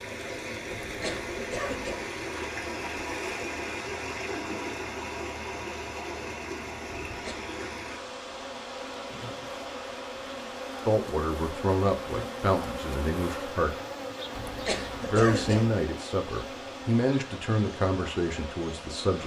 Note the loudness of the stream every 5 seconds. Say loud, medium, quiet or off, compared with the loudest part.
loud, loud, medium, medium.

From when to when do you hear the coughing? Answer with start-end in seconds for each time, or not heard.
0.7-2.0, 7.1-7.5, 14.3-15.7.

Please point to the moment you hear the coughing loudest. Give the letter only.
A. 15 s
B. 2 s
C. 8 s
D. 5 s
A.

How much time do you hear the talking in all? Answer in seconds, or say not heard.
7 s.